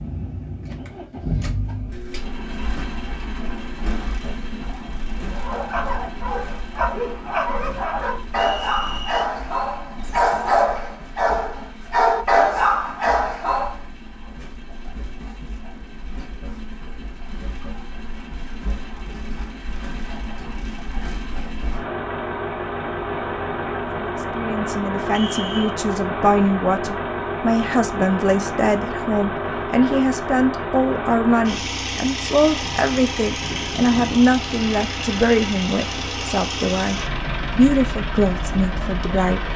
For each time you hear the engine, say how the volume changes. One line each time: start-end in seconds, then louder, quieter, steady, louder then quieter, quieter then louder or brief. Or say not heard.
0.0-39.5 quieter then louder.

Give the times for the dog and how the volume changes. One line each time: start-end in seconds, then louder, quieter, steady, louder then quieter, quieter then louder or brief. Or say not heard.
5.3-13.8 louder.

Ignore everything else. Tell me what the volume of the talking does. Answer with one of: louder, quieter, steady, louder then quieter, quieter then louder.
steady.